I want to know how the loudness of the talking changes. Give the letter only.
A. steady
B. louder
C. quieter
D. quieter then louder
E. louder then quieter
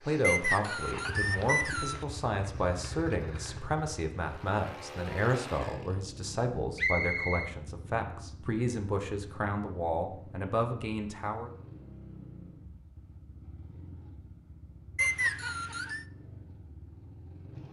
A.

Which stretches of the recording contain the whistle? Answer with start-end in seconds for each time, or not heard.
0.2-2.0, 6.8-7.5, 14.9-16.1.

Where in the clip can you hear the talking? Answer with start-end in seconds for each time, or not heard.
0.1-11.5.